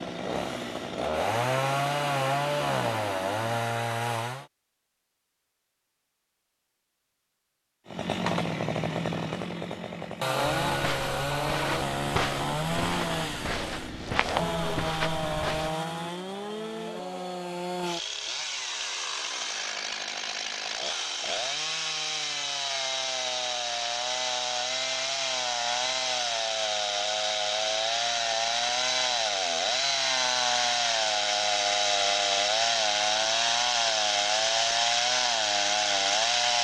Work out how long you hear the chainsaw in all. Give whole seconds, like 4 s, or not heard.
33 s.